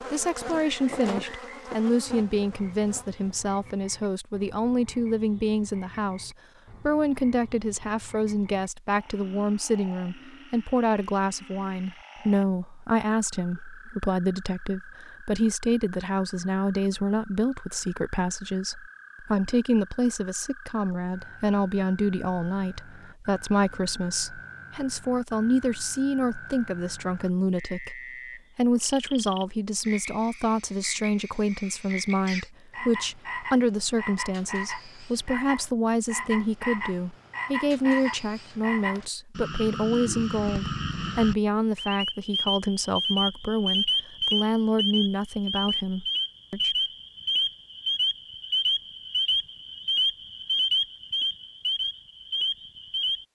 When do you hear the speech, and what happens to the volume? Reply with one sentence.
The speech can be heard from 0.0 to 46.7 s, at a steady volume.